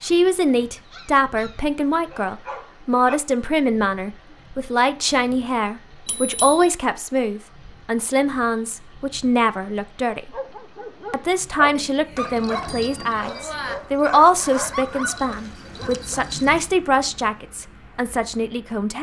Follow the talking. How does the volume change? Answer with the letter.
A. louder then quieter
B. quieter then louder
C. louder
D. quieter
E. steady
E.